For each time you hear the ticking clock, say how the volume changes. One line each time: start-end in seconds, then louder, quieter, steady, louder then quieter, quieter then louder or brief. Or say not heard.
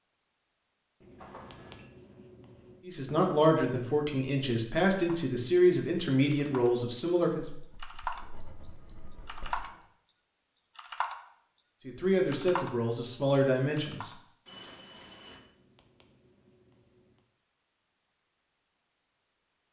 not heard.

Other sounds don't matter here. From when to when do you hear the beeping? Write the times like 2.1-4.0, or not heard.
1.1-1.9, 8.1-9.9, 14.4-15.4.